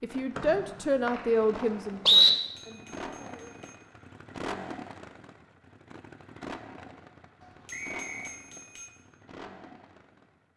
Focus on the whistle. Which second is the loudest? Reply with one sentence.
The volume of the whistle peaks at 2 seconds.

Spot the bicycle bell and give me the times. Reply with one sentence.
The bicycle bell can be heard from 2.4 to 3.8 s and from 7.4 to 8.9 s.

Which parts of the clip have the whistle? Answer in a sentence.
You can hear the whistle from 0.3 to 2.3 s and from 7.7 to 8.3 s.